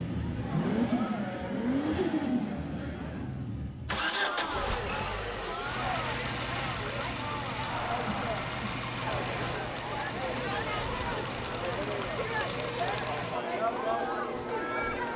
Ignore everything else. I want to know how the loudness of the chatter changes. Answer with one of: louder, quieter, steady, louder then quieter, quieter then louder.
louder.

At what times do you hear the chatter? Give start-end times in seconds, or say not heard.
0.1-15.1.